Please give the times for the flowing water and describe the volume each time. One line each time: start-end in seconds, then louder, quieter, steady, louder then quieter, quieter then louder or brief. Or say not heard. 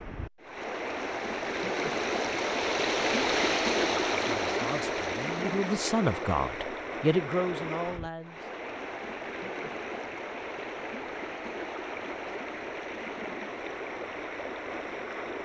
0.0-15.4 quieter.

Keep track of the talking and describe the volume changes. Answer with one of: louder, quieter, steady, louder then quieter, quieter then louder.
louder then quieter.